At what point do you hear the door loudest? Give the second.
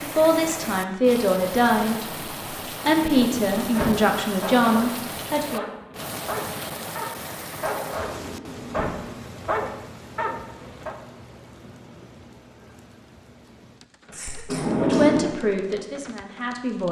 15 s.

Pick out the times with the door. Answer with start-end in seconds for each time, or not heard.
2.9-4.0, 7.8-9.0, 14.4-15.3.